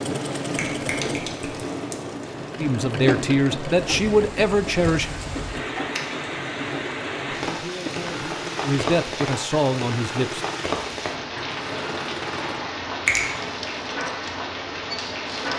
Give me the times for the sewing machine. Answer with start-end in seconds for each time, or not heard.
0.0-15.5.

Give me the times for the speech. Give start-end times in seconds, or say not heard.
2.6-5.1, 7.3-10.4.